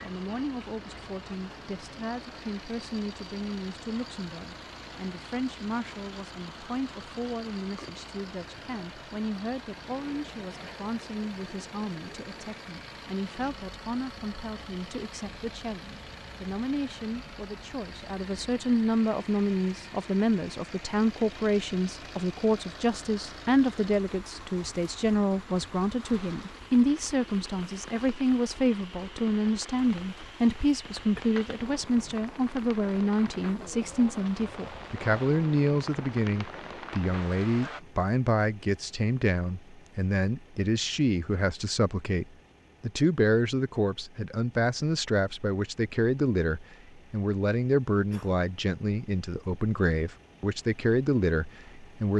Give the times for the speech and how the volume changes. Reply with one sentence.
The speech can be heard from 0.0 to 52.1 s, getting louder.